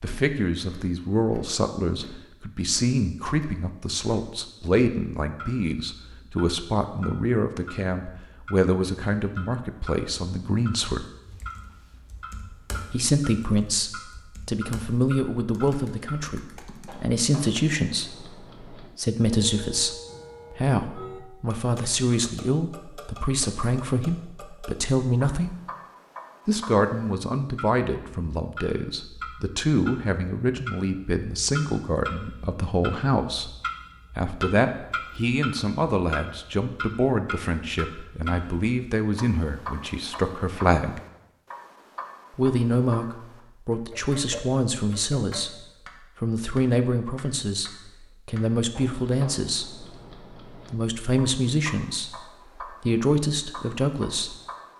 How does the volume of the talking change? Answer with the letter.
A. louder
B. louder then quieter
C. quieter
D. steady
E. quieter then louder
D.